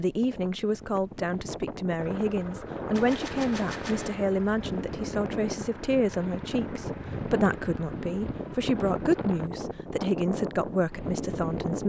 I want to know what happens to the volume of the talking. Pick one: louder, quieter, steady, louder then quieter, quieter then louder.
steady.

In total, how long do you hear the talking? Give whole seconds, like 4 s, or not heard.
12 s.